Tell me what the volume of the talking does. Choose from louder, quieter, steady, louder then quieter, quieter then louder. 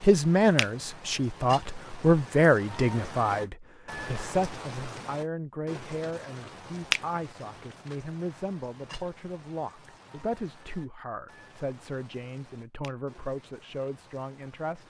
quieter.